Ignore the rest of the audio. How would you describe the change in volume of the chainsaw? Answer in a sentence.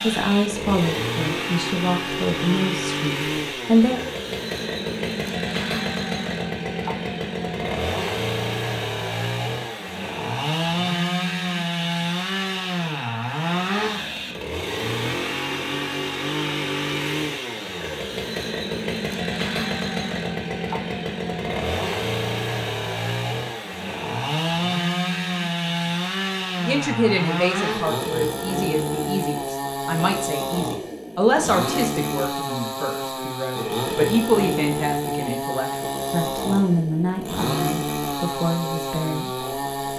The volume of the chainsaw stays about the same.